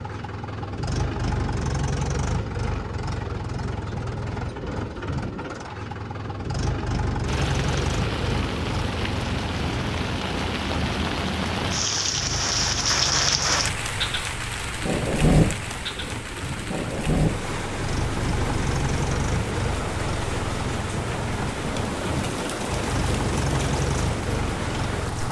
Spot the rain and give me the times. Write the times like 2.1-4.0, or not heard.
7.2-25.2.